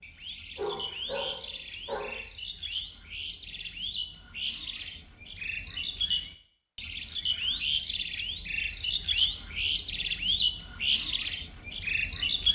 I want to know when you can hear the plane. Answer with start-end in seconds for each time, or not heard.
not heard.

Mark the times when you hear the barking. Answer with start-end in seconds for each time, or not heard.
0.6-2.2.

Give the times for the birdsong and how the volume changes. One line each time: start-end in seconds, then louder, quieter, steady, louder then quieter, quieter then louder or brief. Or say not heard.
0.0-12.5 louder.